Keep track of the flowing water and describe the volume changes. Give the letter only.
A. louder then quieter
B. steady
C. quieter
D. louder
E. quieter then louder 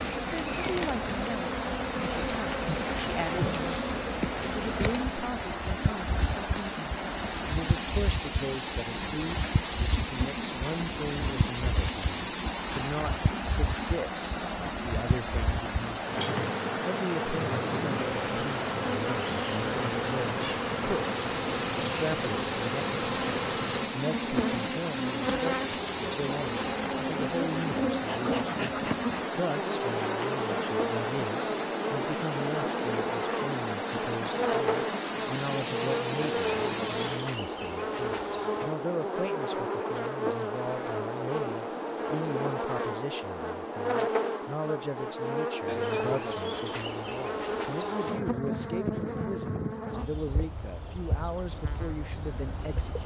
B.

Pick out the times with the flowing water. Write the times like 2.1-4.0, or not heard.
0.0-37.3.